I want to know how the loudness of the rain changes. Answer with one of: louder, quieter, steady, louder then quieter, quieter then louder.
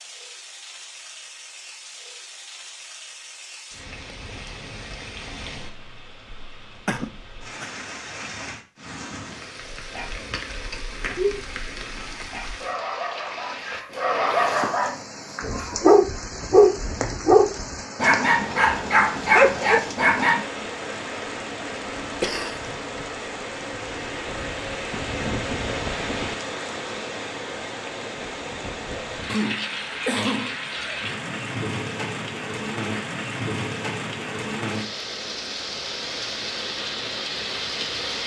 louder.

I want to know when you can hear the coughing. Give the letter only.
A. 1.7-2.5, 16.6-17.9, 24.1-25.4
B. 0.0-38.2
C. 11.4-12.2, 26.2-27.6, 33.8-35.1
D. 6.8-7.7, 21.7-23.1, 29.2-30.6
D.